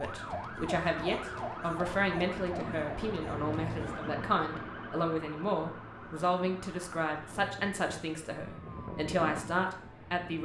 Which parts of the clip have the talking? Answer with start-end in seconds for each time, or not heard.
0.0-10.4.